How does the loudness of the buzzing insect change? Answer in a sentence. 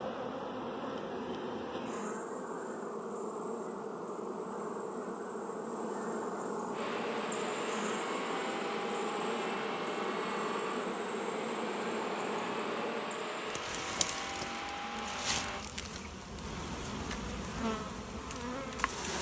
The volume of the buzzing insect stays about the same.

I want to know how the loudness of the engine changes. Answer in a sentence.
The volume of the engine stays about the same.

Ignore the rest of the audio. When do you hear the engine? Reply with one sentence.
You can hear the engine from 6.7 to 15.7 s.